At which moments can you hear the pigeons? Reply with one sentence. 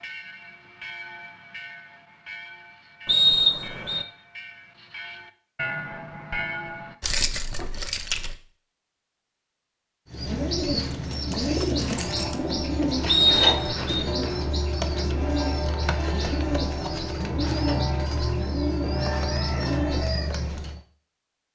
The pigeons can be heard from 10.1 to 20.8 s.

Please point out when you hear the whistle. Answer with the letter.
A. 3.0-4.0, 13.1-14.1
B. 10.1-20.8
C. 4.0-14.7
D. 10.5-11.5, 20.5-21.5
A.